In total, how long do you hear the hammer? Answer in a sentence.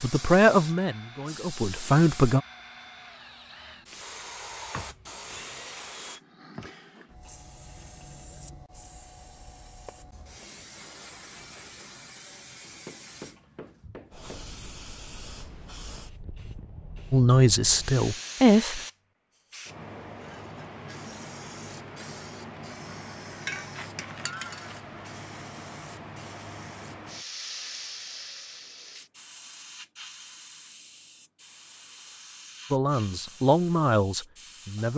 You can hear the hammer for 2 seconds altogether.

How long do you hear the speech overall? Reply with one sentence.
The speech can be heard for 6 seconds in total.